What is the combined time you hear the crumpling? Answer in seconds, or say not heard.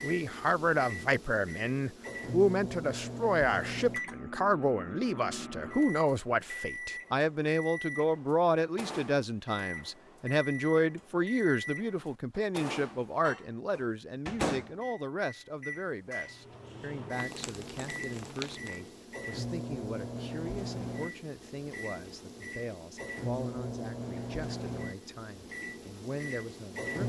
2 s.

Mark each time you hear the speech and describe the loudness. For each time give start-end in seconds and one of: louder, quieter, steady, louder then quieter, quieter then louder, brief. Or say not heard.
0.0-27.0 quieter.